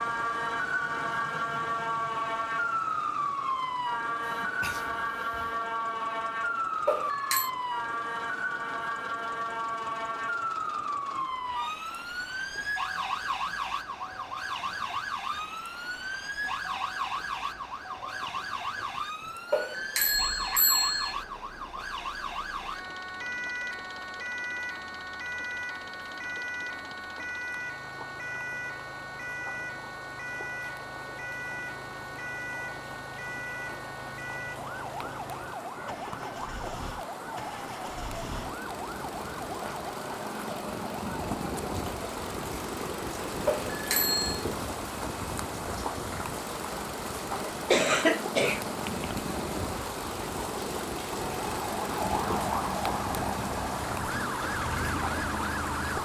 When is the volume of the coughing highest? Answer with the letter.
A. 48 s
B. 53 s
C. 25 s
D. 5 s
A.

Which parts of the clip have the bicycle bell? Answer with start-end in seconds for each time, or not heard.
6.8-7.5, 19.5-21.1, 43.5-44.5.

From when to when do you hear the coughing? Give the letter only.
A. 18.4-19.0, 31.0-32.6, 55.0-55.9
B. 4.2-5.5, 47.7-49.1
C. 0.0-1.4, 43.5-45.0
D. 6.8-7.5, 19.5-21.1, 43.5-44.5
B.